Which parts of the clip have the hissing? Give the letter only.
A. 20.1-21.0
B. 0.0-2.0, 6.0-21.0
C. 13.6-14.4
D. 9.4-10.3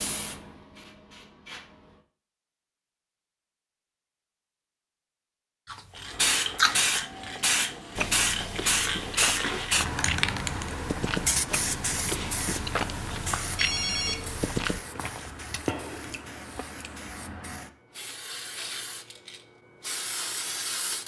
B.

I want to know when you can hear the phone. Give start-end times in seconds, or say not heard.
13.6-14.4.